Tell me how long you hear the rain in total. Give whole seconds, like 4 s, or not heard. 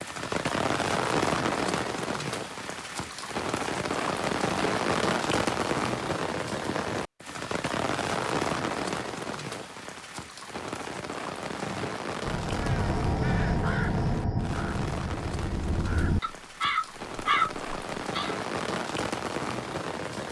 20 s.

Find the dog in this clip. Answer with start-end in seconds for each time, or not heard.
not heard.